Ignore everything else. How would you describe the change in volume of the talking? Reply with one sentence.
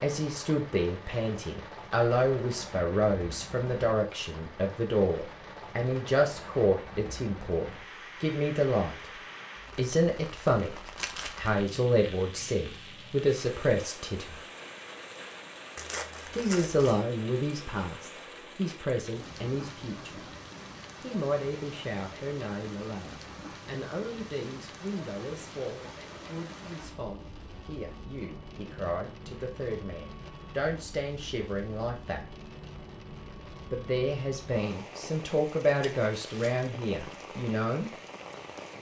The volume of the talking goes down, then up.